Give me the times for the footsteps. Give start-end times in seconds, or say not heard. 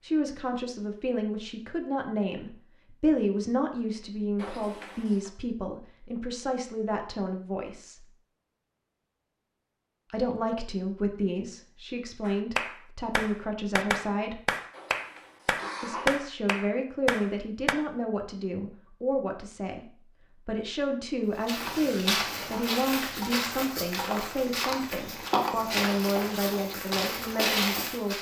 21.4-28.1.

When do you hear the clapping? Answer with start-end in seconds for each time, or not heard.
12.2-17.8.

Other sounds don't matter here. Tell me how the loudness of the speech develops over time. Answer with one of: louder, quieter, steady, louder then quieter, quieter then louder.
steady.